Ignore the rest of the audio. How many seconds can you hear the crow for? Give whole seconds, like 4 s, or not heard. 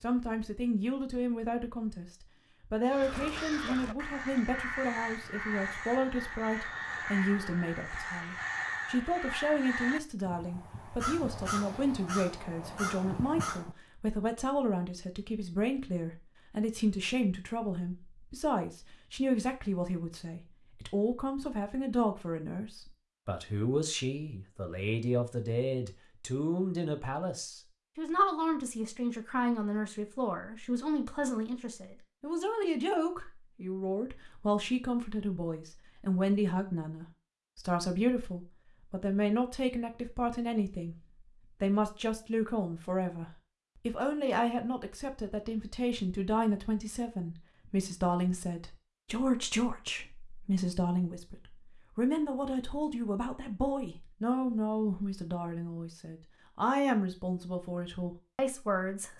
11 s.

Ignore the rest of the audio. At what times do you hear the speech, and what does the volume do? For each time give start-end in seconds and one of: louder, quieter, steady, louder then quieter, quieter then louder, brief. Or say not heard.
0.0-41.0 steady
41.6-59.1 steady.